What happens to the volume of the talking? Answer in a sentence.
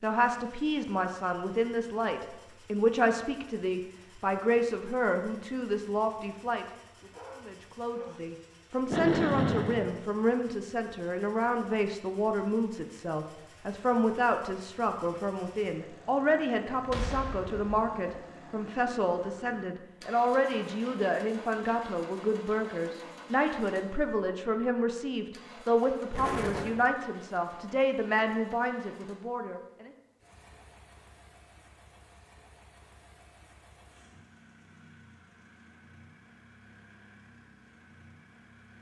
The volume of the talking stays about the same.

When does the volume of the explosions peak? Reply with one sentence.
The volume of the explosions peaks at 9 seconds.